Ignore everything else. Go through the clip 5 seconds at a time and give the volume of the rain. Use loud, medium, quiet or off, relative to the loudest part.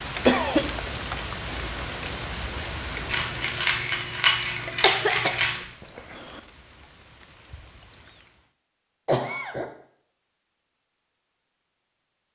loud, quiet, off.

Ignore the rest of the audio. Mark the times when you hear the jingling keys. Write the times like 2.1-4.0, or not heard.
3.0-5.6.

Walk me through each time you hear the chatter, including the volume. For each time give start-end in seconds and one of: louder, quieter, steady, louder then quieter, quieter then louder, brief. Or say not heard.
not heard.